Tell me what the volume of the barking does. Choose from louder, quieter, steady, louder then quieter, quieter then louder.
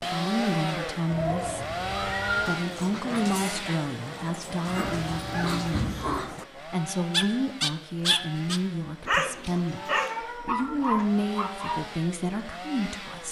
louder.